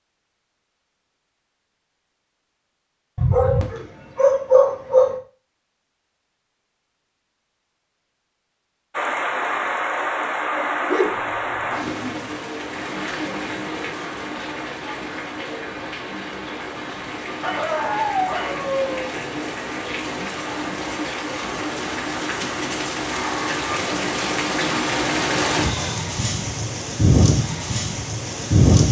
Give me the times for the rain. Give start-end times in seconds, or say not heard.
8.9-28.8.